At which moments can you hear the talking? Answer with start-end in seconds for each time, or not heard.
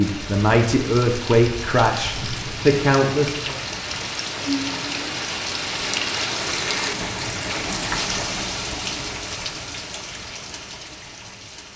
0.0-3.5.